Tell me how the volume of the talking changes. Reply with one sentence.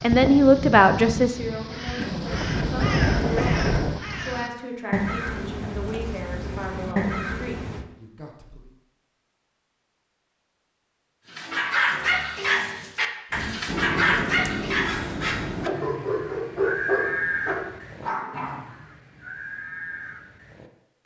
The volume of the talking goes down.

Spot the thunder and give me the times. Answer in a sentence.
You can hear the thunder from 1.9 to 4.0 s.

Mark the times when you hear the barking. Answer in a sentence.
You can hear the barking from 11.3 to 18.6 s.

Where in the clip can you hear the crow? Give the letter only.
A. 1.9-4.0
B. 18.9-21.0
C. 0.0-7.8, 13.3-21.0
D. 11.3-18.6
C.